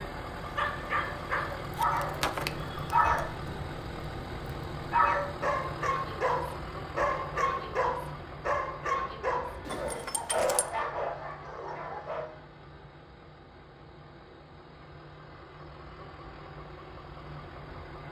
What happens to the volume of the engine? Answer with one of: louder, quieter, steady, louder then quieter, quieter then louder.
quieter.